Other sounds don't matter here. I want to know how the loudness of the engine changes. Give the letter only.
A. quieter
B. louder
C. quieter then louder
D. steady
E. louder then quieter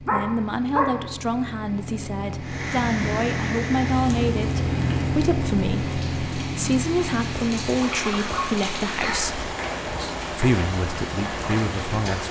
E.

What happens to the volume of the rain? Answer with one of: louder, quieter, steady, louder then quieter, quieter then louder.
quieter then louder.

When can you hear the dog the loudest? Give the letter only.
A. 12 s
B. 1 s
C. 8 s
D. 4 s
B.